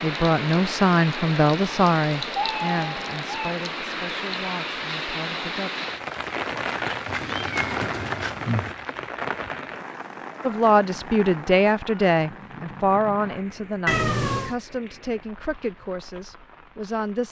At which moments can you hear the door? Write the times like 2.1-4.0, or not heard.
not heard.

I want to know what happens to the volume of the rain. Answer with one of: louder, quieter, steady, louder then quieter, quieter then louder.
quieter.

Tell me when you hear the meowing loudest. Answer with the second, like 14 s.
14 s.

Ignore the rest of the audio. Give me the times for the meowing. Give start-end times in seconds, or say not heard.
2.4-3.5, 7.0-8.8, 13.8-14.6.